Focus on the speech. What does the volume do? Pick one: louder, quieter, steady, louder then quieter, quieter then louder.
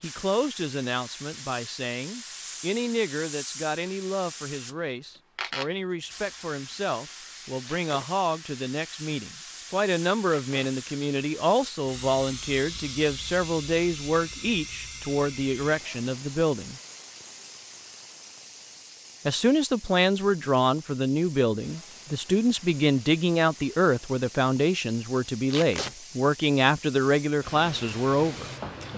louder.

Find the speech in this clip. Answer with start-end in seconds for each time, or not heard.
0.0-16.8, 19.2-28.5.